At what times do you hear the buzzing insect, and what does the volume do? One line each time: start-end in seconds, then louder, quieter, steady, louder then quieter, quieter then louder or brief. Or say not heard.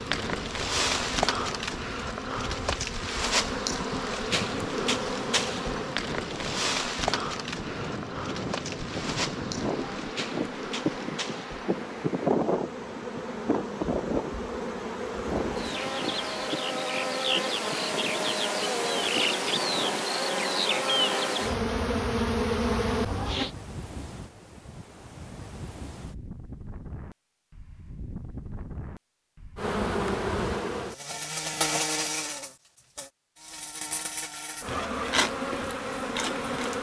0.0-23.5 quieter then louder
29.6-36.7 quieter then louder.